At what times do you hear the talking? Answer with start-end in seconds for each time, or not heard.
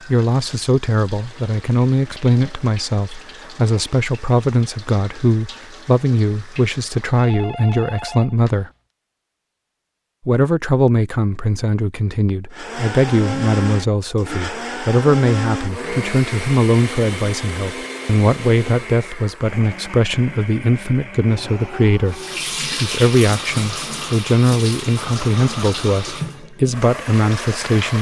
0.1-8.7, 10.2-27.9.